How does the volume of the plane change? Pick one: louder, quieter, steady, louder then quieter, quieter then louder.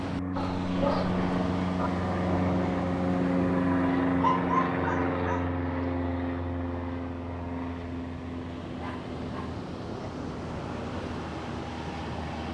quieter.